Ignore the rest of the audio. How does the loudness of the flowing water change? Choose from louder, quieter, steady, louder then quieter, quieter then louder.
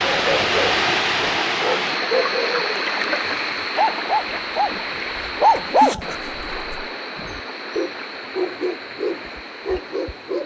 quieter.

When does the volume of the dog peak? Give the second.
6 s.